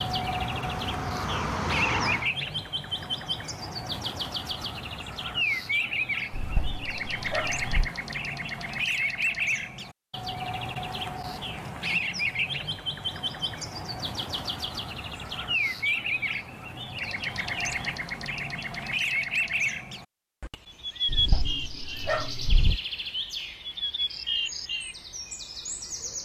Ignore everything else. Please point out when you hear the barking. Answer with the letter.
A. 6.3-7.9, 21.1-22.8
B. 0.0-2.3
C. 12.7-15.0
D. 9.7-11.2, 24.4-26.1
A.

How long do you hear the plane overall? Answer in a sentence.
The plane can be heard for 2 seconds in total.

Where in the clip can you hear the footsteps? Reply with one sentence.
You can't hear the footsteps here.